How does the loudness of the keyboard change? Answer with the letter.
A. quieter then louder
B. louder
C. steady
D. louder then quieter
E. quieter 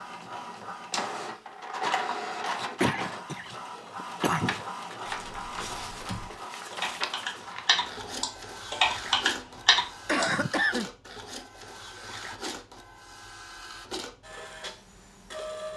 B.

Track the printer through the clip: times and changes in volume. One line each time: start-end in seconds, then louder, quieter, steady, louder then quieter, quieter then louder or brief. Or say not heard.
0.0-15.7 quieter.